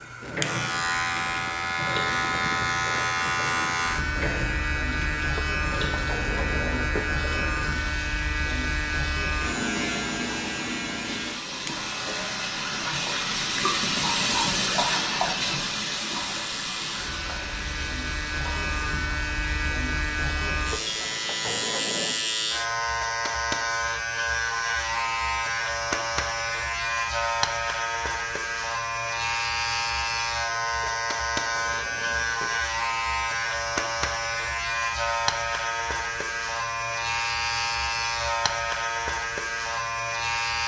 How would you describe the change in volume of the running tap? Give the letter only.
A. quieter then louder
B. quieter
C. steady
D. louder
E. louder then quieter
E.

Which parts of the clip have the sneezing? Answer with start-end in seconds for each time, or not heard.
not heard.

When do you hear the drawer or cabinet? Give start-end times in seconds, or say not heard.
5.3-7.1, 20.7-22.1, 30.8-32.6.